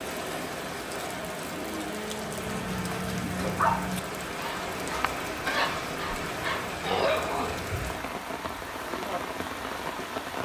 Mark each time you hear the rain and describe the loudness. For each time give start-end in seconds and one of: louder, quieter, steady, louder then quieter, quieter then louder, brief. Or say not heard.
0.0-10.3 steady.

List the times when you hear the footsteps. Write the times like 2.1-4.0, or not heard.
not heard.